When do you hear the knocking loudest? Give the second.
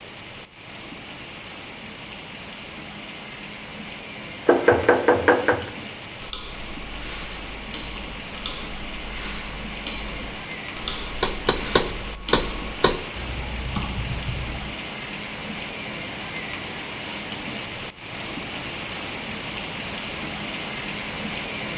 5 s.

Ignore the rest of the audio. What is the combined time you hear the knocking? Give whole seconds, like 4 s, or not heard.
3 s.